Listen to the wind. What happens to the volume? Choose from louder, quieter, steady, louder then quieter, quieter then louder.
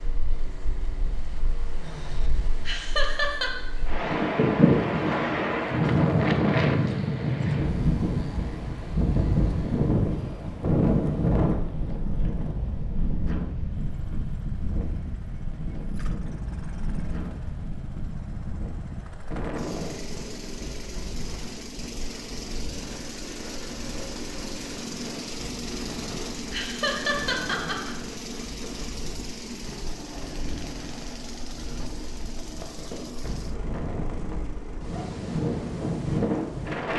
quieter then louder.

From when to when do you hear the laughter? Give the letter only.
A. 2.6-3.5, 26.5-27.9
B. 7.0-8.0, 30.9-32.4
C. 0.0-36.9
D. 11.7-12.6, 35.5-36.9
A.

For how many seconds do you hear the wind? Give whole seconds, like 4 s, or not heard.
37 s.